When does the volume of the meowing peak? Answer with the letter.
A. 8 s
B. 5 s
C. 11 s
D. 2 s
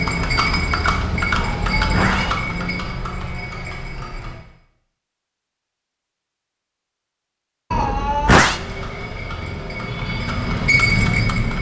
A.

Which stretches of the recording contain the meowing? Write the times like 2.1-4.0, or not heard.
1.4-2.4, 7.7-8.6.